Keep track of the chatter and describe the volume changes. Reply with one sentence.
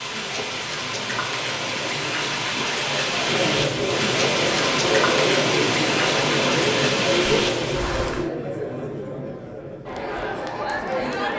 The loudness of the chatter goes up, then down.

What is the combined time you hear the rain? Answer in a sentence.
You can hear the rain for 8 seconds altogether.